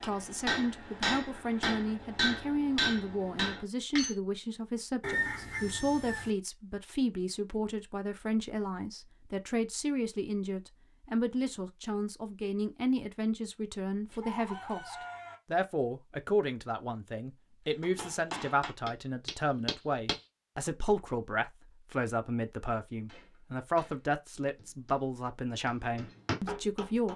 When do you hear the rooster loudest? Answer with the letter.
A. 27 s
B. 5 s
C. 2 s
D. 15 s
B.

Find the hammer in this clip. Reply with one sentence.
The hammer can be heard from 0.0 to 4.2 s, from 17.8 to 20.2 s and from 23.1 to 27.1 s.